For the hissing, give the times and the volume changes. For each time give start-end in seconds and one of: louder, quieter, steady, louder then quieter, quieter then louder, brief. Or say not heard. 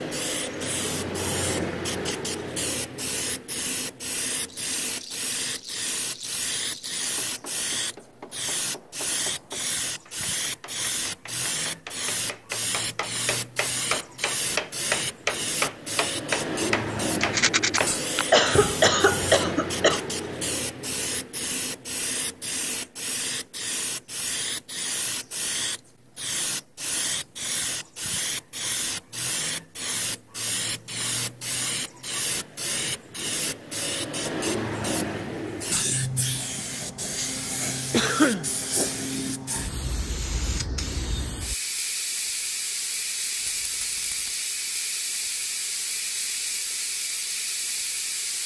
0.0-48.4 steady.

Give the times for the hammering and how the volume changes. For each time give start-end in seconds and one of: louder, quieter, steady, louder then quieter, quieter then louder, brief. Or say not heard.
7.0-18.0 louder.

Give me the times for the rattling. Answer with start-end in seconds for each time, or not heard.
4.5-7.0, 17.2-17.8, 43.4-44.4.